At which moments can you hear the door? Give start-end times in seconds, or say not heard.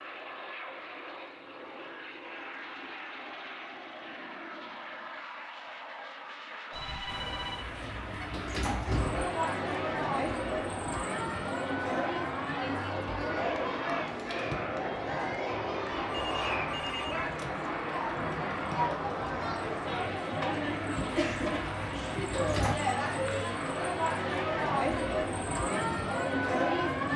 7.0-9.2, 21.1-22.8.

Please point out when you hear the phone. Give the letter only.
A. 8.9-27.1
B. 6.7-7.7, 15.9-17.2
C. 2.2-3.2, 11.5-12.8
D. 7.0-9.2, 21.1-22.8
B.